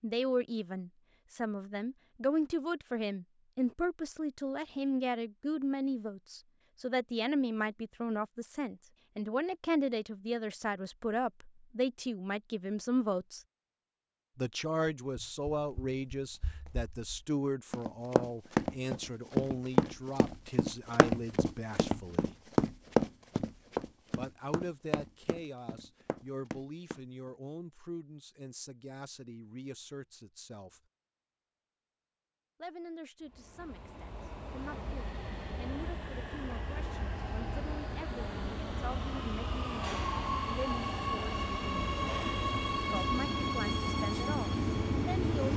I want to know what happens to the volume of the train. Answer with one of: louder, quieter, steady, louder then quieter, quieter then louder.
louder.